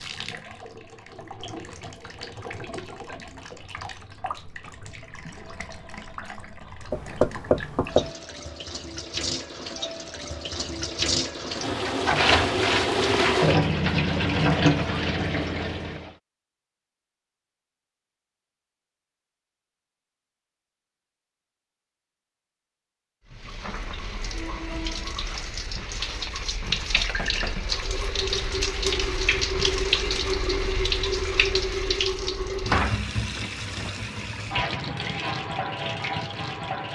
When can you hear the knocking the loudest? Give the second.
7 s.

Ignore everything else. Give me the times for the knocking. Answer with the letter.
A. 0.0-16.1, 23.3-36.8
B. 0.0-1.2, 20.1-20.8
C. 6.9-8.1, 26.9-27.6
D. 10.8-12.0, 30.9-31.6
C.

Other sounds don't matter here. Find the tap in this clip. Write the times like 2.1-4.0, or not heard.
0.0-16.1, 23.3-36.8.